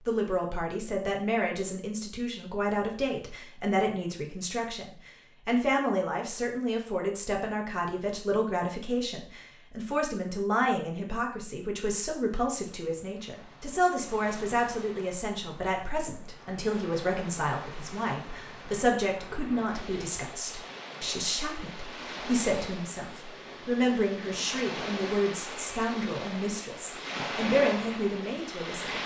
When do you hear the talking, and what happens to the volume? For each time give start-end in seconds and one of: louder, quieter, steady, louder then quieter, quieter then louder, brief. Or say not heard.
0.1-29.0 steady.